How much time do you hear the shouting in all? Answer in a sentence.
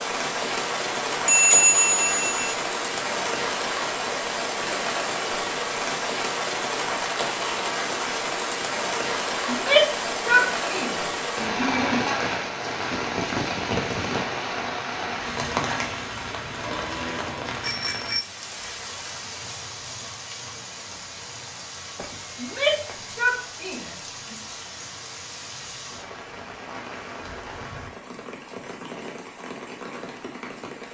You can hear the shouting for 5 seconds altogether.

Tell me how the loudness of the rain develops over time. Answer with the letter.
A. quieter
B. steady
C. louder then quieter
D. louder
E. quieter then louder
A.